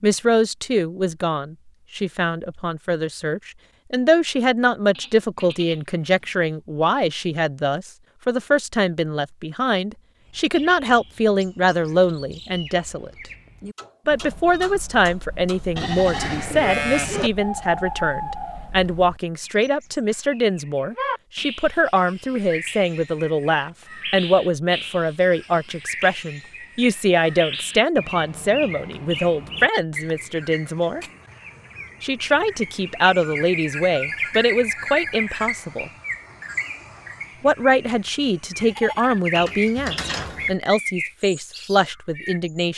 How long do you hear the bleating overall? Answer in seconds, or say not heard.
5 s.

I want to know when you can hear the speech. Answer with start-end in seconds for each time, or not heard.
0.0-13.1, 14.1-31.1, 32.0-35.9, 37.4-42.7.